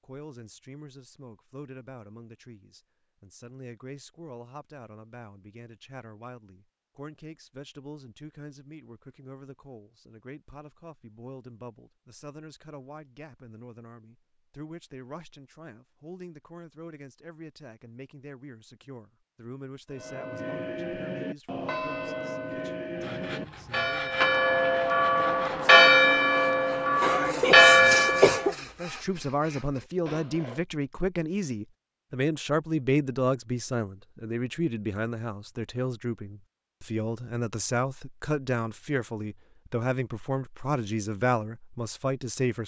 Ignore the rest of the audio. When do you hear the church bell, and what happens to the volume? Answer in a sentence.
You can hear the church bell from 19.9 to 28.5 s, getting louder.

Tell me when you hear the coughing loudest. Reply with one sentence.
The loudest moment of the coughing is at 28 seconds.